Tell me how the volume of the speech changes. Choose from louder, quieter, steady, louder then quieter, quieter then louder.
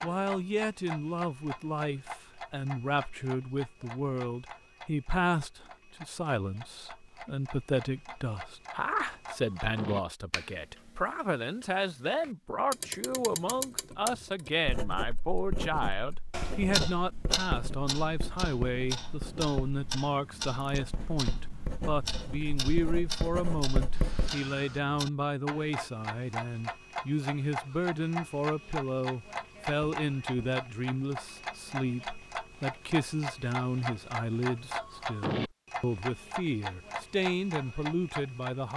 steady.